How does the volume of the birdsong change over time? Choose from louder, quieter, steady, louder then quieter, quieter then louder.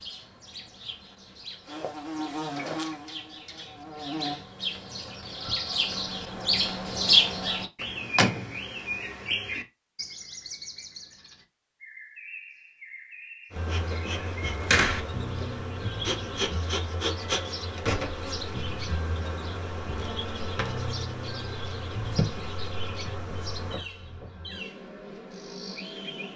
louder then quieter.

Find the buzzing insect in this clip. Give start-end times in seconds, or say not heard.
1.6-4.5, 13.5-26.3.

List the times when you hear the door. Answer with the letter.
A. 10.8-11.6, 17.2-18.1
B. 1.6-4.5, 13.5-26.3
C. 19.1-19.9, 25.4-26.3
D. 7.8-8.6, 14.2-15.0
D.